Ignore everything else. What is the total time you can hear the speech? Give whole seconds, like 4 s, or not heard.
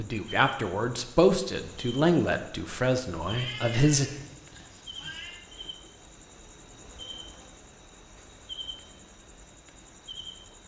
4 s.